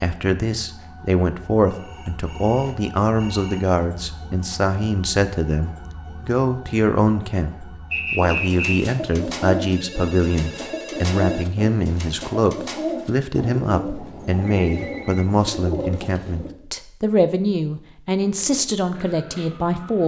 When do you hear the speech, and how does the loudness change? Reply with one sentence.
You can hear the speech from 0.0 to 20.0 s, at a steady volume.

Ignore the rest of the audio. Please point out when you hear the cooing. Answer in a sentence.
The cooing can be heard from 8.3 to 16.5 s and from 18.3 to 20.0 s.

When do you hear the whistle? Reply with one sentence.
The whistle can be heard from 7.9 to 8.8 s.